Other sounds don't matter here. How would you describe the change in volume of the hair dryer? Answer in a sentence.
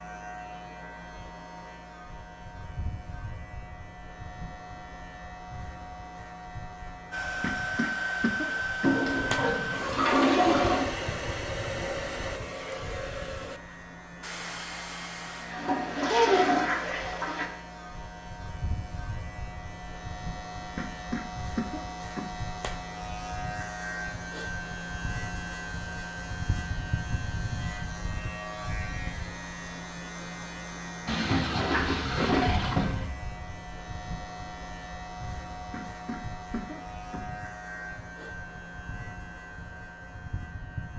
The volume of the hair dryer goes down.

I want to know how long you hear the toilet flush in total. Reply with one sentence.
The toilet flush can be heard for 6 seconds in total.